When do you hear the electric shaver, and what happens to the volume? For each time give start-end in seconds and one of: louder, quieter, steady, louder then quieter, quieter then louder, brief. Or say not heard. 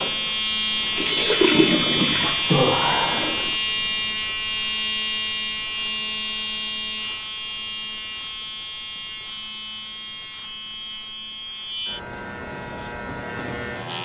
0.0-13.9 quieter.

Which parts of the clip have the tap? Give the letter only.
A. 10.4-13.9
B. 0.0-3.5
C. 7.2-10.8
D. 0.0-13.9
B.